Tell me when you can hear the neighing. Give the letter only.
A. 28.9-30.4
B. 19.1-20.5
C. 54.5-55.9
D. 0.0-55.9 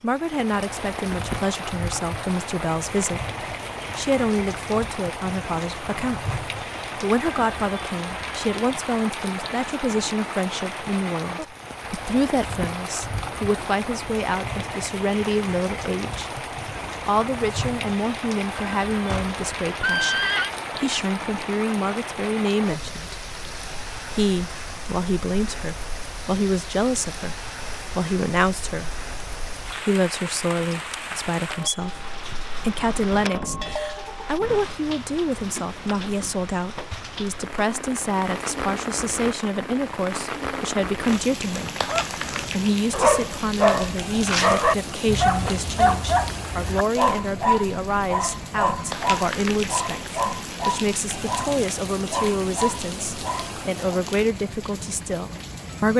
B.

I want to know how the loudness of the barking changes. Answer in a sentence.
The volume of the barking goes down.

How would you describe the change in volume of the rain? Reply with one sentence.
The loudness of the rain stays about the same.